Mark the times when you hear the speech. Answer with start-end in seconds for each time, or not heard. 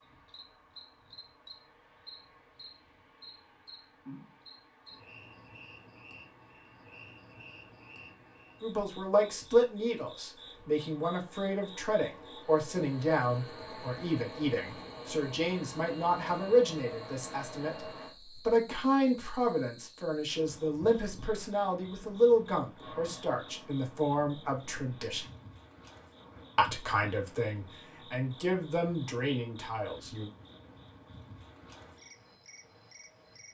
8.6-25.2, 26.6-30.3.